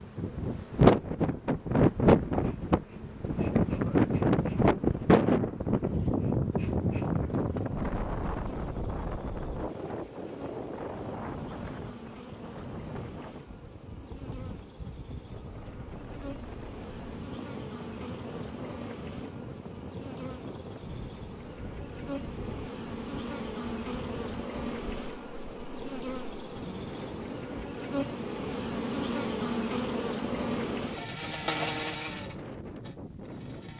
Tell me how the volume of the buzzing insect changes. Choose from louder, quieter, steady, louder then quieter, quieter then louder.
louder.